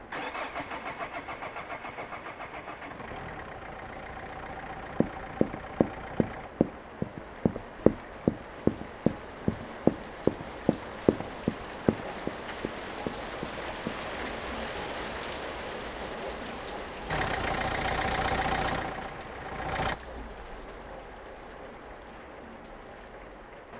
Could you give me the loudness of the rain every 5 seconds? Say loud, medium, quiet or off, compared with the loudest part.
medium, medium, loud, loud, medium.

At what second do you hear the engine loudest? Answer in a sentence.
The volume of the engine peaks at 18 seconds.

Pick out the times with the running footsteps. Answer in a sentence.
The running footsteps can be heard from 4.7 to 14.1 s.